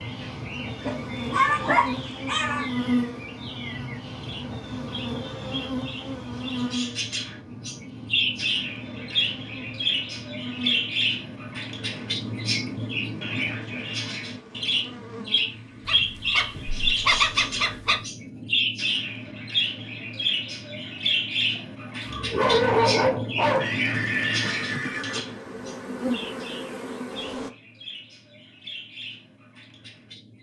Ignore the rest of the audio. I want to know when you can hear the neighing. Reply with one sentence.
The neighing can be heard from 23.5 to 25.2 s.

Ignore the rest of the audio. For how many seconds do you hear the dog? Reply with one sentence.
You can hear the dog for 6 seconds altogether.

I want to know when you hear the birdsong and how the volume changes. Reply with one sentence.
The birdsong can be heard from 0.0 to 30.3 s, getting louder then quieter.